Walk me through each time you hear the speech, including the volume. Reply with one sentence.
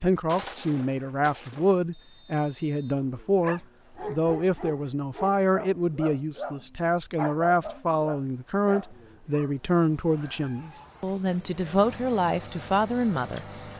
The speech can be heard from 0.0 to 13.4 s, at a steady volume.